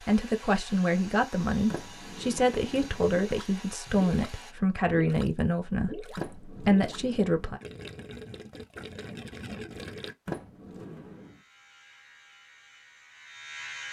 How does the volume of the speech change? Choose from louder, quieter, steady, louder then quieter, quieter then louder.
steady.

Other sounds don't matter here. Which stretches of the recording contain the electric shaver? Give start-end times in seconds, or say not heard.
11.1-13.8.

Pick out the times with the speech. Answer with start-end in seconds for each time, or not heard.
0.1-7.6.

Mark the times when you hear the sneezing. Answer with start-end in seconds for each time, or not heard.
not heard.